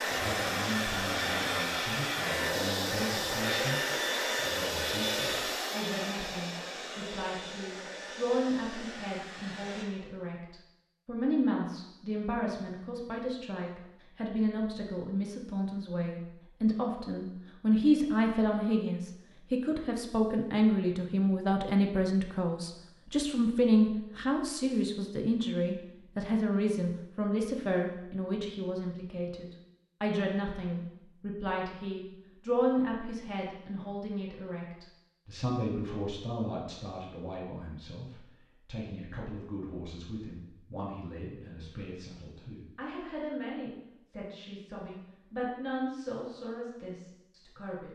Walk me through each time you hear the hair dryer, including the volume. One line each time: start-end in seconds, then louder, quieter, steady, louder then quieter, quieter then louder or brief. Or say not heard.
0.0-9.8 quieter.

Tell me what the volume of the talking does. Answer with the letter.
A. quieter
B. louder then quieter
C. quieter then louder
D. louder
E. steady
B.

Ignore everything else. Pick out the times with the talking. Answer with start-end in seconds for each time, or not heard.
0.0-47.9.